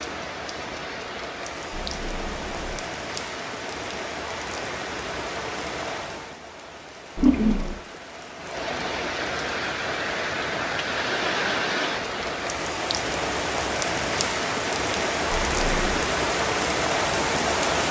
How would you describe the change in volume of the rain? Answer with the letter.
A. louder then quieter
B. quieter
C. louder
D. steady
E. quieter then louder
C.